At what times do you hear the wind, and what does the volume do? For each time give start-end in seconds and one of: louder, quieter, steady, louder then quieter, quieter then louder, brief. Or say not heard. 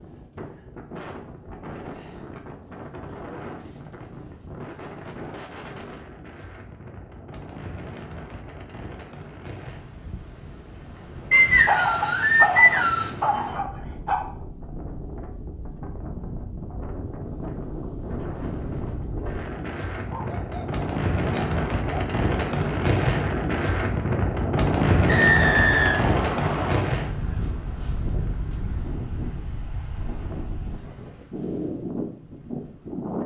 0.0-33.2 louder then quieter.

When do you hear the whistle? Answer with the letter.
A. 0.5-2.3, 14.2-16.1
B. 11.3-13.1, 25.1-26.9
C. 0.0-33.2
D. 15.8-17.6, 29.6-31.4
B.